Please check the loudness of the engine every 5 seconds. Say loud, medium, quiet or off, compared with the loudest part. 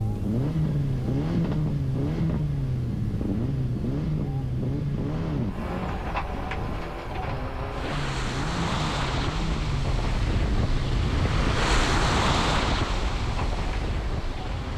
loud, medium, medium.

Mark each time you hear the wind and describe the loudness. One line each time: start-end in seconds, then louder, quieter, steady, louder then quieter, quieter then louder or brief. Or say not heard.
0.0-14.7 louder.